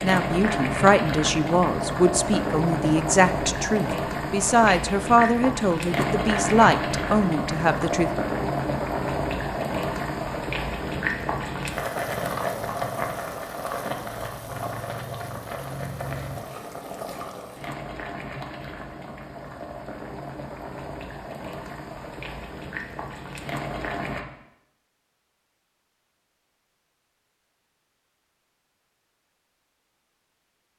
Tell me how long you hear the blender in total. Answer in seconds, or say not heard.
not heard.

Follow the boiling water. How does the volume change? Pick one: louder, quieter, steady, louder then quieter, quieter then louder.
quieter.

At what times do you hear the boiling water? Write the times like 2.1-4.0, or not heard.
0.0-24.2.